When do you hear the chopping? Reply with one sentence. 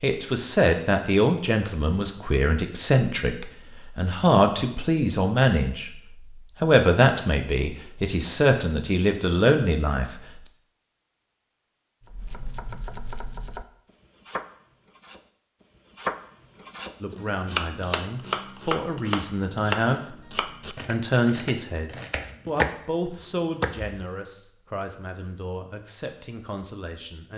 The chopping can be heard from 12.1 to 24.0 s.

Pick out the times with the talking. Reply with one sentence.
You can hear the talking from 0.0 to 6.0 s, from 6.6 to 10.2 s, from 17.0 to 20.1 s and from 20.9 to 27.3 s.